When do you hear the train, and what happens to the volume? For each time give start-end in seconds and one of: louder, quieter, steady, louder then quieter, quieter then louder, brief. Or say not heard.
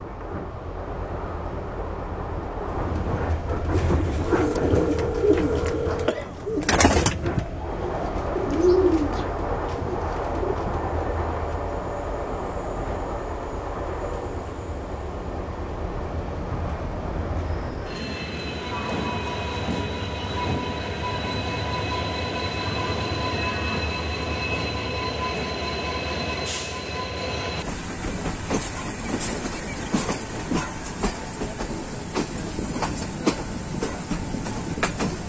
0.0-35.2 steady.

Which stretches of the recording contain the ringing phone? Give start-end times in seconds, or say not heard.
4.2-6.2.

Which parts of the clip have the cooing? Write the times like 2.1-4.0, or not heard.
3.7-10.6.